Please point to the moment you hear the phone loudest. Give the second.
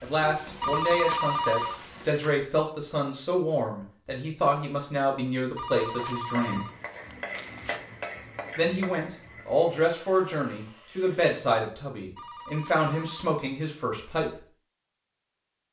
1 s.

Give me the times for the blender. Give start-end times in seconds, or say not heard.
not heard.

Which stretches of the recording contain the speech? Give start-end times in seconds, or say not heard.
0.0-6.7, 8.6-14.4.